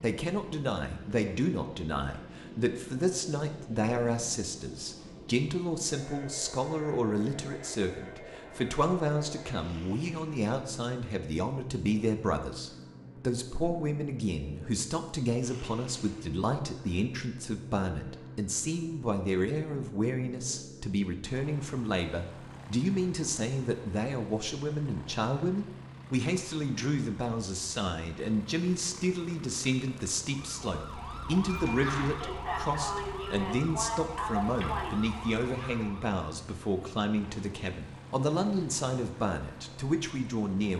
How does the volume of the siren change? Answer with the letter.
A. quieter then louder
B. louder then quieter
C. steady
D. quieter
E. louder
B.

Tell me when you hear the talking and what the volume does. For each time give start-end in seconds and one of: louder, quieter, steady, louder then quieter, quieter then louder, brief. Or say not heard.
0.0-40.7 steady.